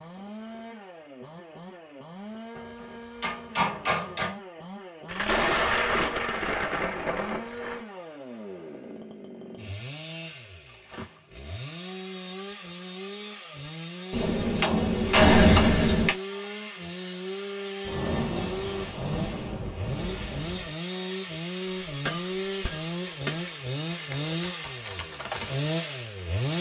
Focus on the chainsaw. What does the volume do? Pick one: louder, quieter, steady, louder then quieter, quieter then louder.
louder.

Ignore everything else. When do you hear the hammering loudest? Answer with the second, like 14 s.
15 s.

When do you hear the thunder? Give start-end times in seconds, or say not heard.
5.0-7.8, 17.9-20.8.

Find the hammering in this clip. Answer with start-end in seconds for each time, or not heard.
2.5-4.3, 14.1-16.1, 21.9-23.4.